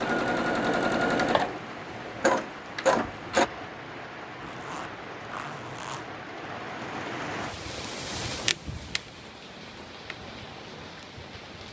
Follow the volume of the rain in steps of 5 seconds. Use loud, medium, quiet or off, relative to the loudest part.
loud, loud, medium.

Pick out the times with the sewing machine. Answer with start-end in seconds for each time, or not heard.
0.0-3.5.